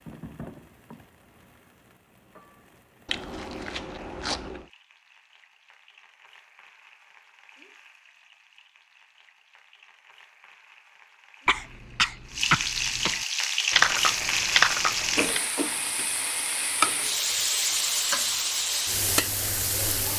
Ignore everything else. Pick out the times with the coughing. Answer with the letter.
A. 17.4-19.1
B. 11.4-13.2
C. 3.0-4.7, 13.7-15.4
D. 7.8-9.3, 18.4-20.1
B.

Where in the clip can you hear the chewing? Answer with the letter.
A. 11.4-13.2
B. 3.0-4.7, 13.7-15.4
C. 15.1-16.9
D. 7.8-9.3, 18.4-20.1
B.